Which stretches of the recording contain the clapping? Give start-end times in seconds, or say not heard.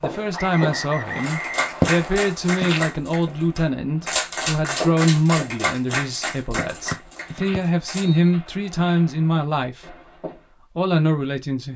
1.2-8.1.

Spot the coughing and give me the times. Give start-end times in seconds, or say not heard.
not heard.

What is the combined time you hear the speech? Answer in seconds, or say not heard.
11 s.